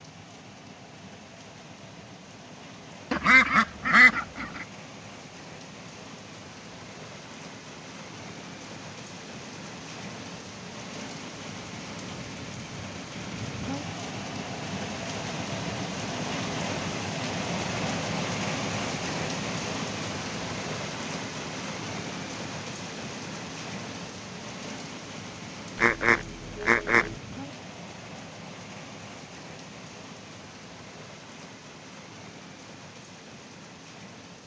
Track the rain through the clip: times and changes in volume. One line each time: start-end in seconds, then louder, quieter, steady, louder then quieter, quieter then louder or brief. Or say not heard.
0.0-34.4 louder then quieter.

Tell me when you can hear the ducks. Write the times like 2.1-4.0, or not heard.
3.1-4.7, 25.8-27.1.